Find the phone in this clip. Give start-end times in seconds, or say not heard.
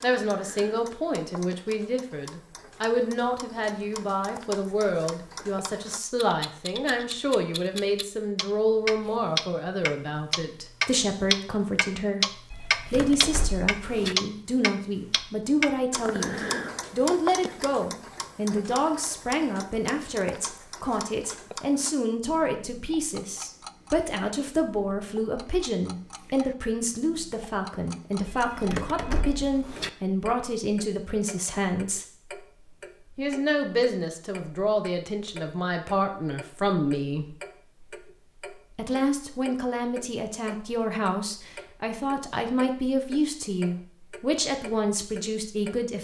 12.5-14.2, 28.2-29.9.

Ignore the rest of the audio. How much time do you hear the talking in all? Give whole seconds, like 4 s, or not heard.
43 s.